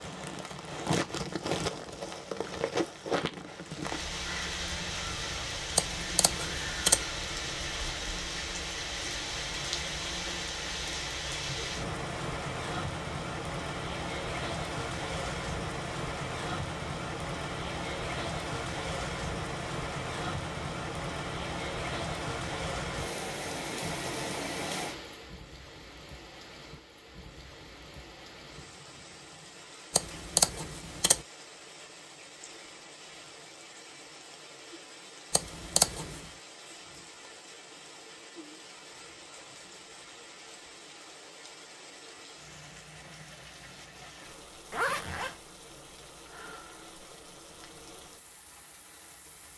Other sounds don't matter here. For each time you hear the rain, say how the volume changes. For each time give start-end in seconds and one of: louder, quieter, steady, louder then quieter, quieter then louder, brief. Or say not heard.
0.0-49.5 quieter.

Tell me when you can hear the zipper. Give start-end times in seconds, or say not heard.
44.7-45.4.